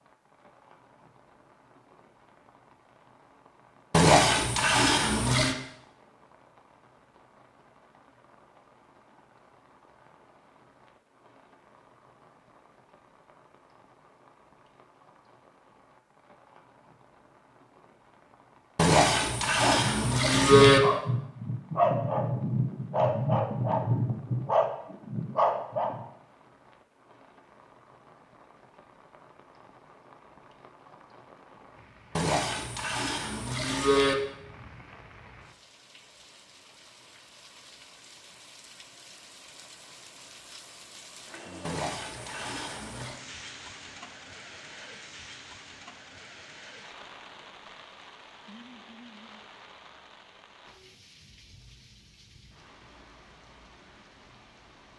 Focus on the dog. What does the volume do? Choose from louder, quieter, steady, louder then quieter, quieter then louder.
steady.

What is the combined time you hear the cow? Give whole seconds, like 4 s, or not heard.
7 s.